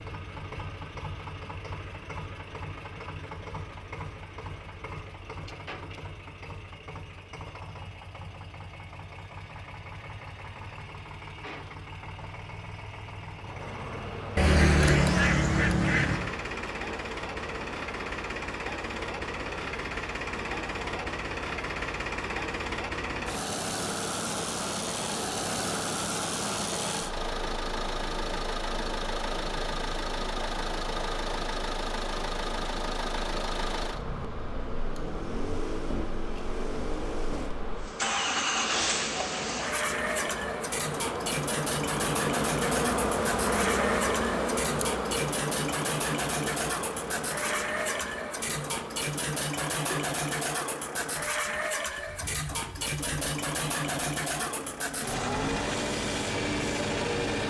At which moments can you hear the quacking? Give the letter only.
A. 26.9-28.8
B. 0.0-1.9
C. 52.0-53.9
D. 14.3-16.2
D.